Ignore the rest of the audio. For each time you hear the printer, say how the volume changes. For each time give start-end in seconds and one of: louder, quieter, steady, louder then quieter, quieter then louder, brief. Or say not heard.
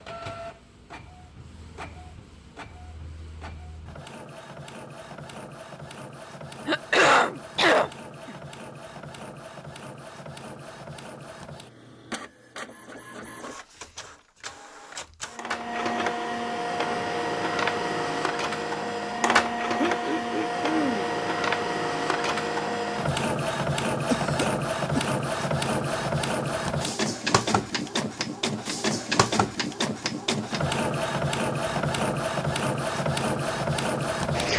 0.0-34.5 louder.